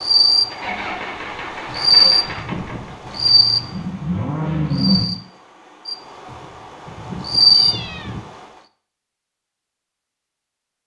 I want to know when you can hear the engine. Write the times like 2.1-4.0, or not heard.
0.0-5.1.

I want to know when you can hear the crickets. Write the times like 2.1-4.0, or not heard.
0.0-8.4.